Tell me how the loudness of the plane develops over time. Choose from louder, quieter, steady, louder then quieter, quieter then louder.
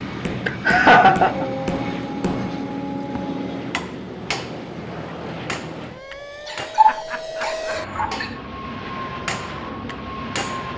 steady.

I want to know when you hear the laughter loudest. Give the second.
1 s.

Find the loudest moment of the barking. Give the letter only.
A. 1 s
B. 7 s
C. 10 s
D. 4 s
B.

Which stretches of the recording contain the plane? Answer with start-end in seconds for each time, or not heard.
0.0-10.7.